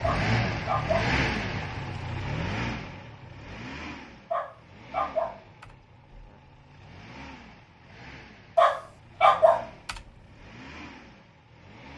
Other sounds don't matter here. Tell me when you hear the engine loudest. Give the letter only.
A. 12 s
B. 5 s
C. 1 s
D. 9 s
C.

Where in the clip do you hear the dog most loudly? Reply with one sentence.
The volume of the dog peaks at 9 seconds.